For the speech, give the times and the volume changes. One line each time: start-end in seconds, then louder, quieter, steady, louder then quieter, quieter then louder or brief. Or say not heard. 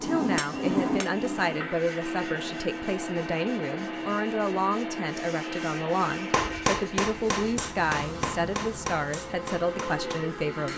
0.0-10.7 steady.